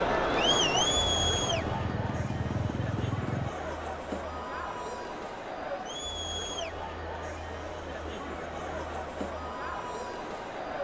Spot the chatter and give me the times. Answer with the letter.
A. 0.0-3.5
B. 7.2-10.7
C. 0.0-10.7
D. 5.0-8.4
C.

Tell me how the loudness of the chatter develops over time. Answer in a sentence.
The loudness of the chatter goes down.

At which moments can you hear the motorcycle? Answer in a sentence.
The motorcycle can be heard from 0.0 to 3.5 s.